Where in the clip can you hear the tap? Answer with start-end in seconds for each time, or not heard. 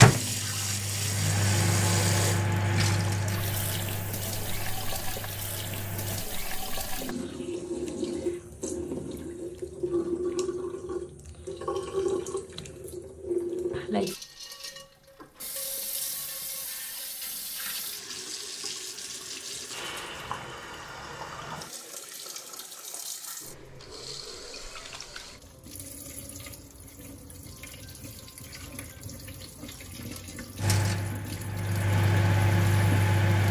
0.0-33.1.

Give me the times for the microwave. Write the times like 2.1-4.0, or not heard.
0.0-6.2, 30.6-33.4.